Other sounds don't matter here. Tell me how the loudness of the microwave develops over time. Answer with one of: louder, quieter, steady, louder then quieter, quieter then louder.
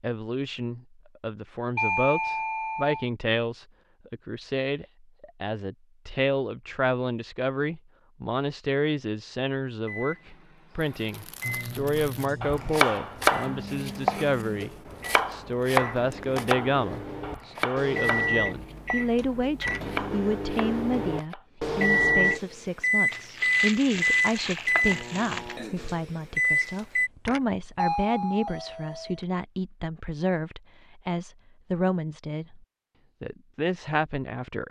louder.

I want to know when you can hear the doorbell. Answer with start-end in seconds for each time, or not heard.
1.8-3.0, 19.1-19.8, 26.8-29.2.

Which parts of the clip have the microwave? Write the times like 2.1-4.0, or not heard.
9.8-27.1.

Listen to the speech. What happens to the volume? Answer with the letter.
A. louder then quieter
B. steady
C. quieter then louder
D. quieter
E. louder
B.